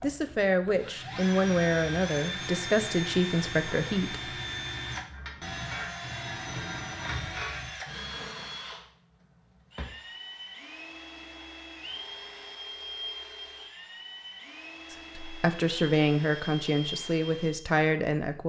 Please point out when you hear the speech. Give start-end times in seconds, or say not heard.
0.0-4.3, 14.9-18.4.